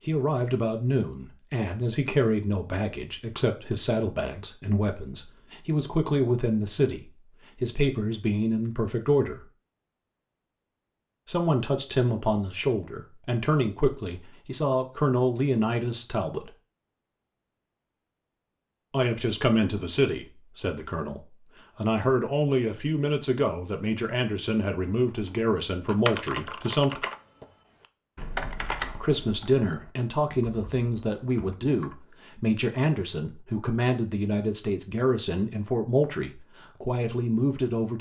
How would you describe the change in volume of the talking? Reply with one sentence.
The loudness of the talking stays about the same.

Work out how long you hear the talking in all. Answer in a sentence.
You can hear the talking for 32 seconds altogether.